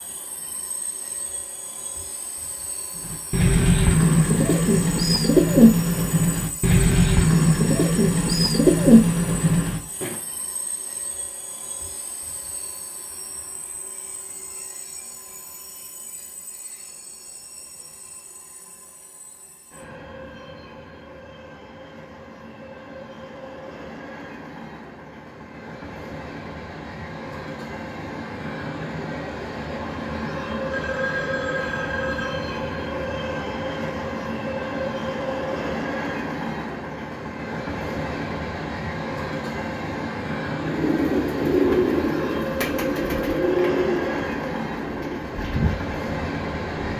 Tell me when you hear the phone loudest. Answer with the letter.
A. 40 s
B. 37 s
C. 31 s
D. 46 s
C.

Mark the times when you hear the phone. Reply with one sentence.
The phone can be heard from 30.7 to 32.6 s.